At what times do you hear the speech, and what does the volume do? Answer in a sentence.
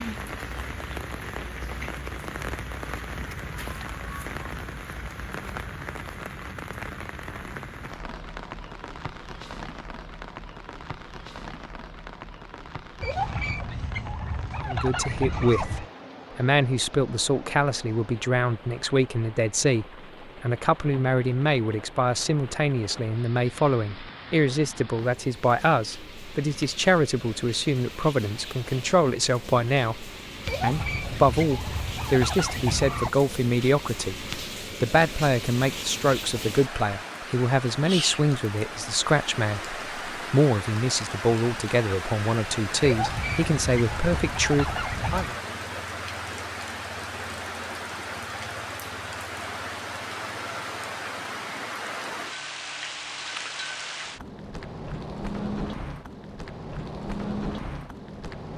The speech can be heard from 14.7 to 45.4 s, at a steady volume.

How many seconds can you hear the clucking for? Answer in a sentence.
You can hear the clucking for 8 seconds altogether.